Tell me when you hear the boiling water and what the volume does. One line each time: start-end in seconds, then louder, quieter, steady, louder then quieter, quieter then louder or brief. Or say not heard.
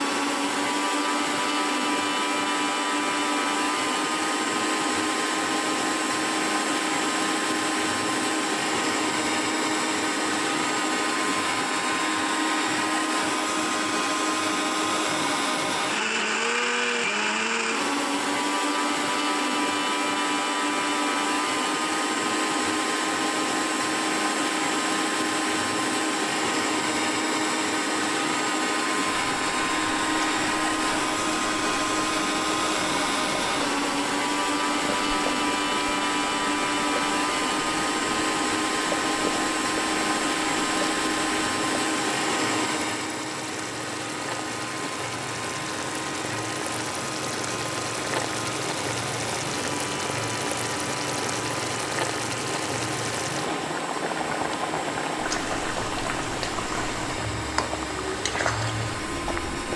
29.1-59.7 louder.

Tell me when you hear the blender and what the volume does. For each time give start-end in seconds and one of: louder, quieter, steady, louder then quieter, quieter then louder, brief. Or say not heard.
0.0-59.7 quieter.